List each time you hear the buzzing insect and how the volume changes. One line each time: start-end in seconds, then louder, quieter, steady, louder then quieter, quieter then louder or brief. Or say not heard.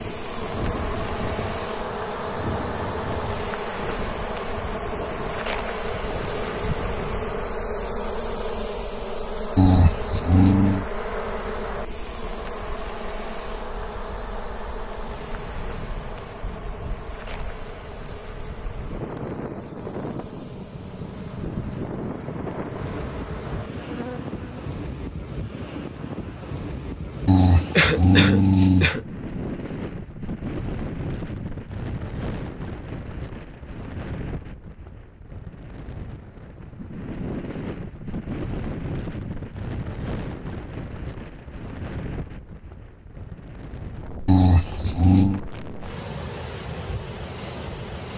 0.0-24.6 quieter.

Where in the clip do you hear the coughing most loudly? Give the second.
28 s.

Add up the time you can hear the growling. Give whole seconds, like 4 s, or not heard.
4 s.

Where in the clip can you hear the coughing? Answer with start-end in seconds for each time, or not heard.
27.8-29.1.